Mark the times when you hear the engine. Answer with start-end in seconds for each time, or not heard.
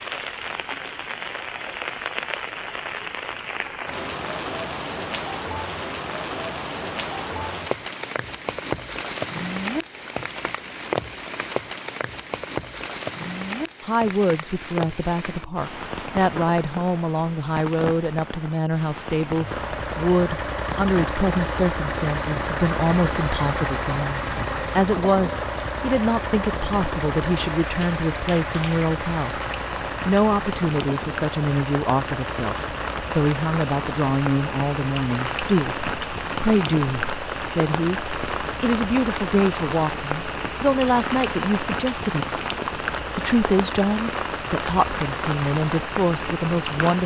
19.4-47.0.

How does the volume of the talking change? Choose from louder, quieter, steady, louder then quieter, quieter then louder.
steady.